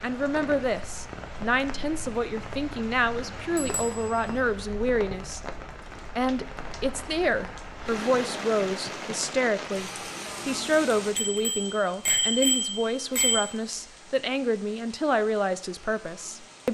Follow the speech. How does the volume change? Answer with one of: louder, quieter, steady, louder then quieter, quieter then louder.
steady.